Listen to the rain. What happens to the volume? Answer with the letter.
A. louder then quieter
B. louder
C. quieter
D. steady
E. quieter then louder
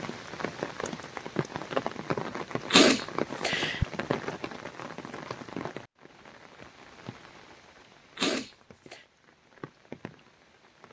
C.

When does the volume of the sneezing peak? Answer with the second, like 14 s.
3 s.